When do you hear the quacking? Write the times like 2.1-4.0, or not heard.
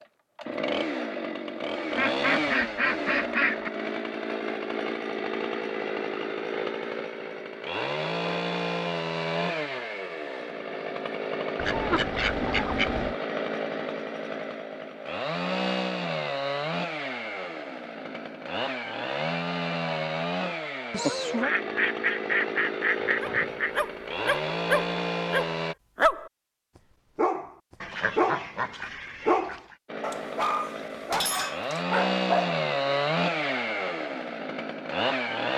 1.9-3.7, 11.6-13.2, 20.9-23.8, 27.8-29.8.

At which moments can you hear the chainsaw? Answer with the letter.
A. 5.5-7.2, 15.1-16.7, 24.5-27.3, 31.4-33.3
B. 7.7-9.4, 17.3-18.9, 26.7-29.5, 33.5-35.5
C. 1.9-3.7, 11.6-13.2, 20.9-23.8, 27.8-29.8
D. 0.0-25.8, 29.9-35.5
D.